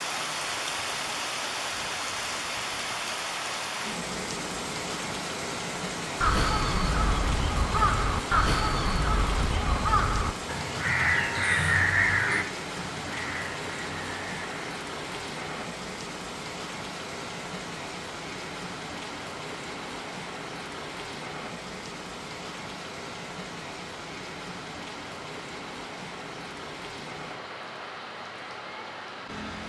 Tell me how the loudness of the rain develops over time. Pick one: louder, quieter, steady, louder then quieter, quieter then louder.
quieter.